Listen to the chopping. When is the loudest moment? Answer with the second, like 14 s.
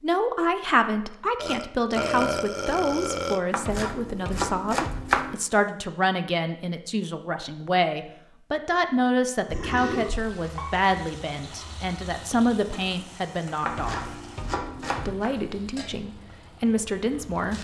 5 s.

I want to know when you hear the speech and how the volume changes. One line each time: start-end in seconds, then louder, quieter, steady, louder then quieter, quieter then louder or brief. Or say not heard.
0.0-14.1 steady
15.1-17.5 brief.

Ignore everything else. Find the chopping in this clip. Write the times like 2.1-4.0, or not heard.
3.5-5.3, 13.6-15.3.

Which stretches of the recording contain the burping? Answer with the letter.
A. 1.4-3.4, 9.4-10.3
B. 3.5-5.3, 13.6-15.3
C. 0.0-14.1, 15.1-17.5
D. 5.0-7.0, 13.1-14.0
A.